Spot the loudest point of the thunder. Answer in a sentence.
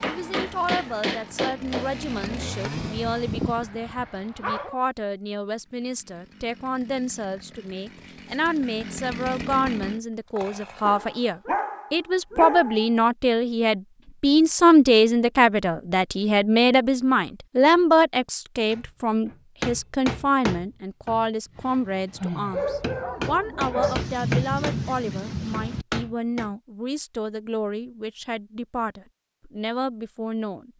The volume of the thunder peaks at 24 seconds.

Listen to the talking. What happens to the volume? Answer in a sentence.
The volume of the talking goes up, then down.